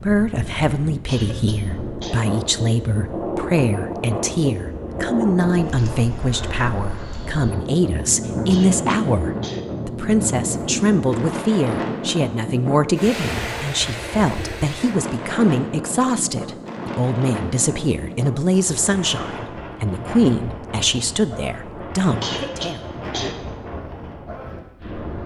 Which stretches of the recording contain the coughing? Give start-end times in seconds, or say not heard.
1.1-2.2, 8.5-9.6, 22.2-23.4.